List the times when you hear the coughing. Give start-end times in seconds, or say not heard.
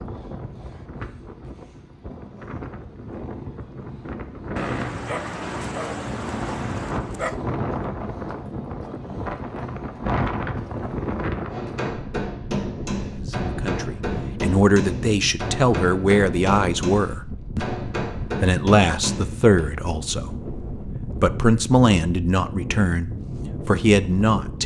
not heard.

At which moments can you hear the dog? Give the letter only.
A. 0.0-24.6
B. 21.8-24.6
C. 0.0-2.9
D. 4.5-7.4
D.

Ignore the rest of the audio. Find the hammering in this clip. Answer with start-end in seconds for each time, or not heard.
11.4-19.6.